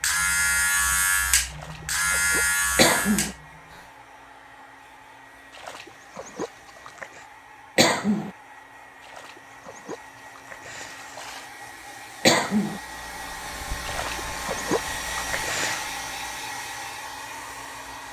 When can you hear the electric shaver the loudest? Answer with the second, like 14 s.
1 s.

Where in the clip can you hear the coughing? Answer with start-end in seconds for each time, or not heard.
2.8-3.4, 7.8-8.3, 12.2-12.8.